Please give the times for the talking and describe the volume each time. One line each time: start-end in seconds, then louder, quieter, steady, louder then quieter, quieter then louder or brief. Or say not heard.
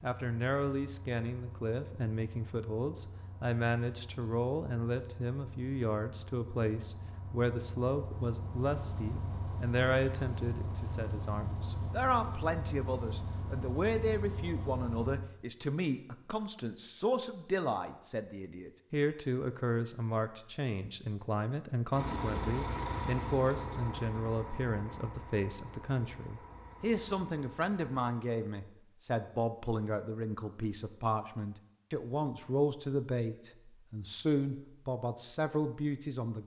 0.0-36.4 steady.